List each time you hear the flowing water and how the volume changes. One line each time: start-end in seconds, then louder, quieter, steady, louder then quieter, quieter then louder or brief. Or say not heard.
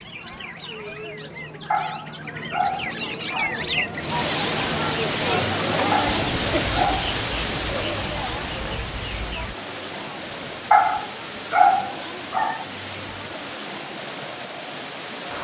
4.0-15.3 quieter.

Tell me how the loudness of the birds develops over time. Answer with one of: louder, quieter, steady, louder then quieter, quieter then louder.
louder then quieter.